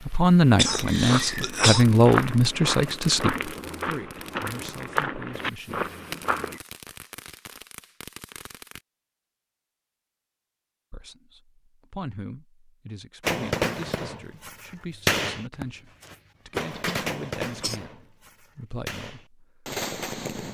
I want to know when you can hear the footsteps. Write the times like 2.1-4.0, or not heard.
0.7-6.6.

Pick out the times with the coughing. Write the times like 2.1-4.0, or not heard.
0.6-1.9, 16.8-17.8.